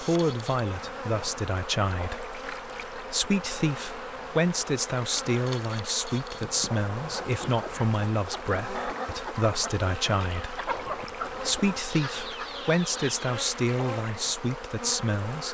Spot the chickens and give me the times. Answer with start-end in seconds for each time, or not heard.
7.0-13.3.